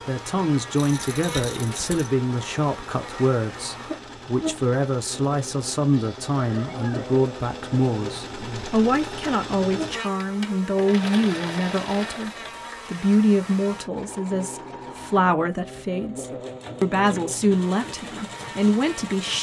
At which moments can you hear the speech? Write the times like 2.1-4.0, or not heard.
0.1-19.3.